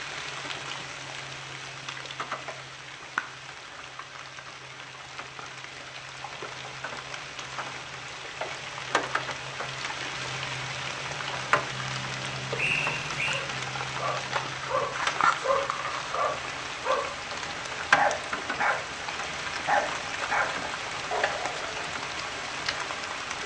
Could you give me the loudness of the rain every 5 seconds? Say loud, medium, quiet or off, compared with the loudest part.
medium, medium, loud, loud, loud.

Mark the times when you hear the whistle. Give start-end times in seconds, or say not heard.
12.6-13.4.